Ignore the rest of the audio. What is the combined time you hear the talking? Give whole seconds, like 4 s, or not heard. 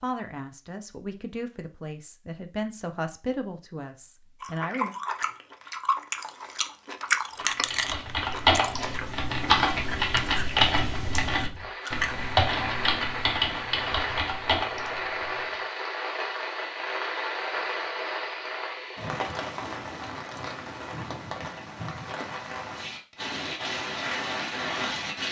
5 s.